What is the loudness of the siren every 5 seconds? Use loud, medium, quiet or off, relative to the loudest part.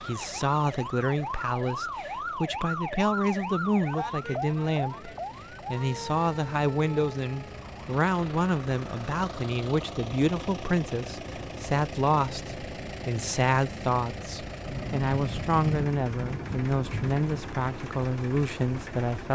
loud, medium, off, off.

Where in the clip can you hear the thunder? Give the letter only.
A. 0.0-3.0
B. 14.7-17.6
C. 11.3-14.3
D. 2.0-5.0
B.